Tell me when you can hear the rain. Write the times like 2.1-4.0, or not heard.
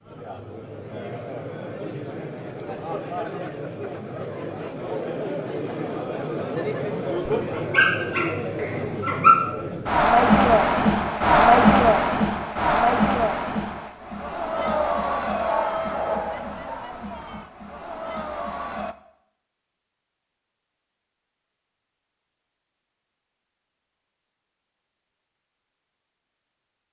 not heard.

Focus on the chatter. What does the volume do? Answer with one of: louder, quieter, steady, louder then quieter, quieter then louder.
louder then quieter.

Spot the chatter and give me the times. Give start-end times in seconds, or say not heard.
0.0-18.9.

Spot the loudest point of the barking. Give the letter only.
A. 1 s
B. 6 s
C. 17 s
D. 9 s
D.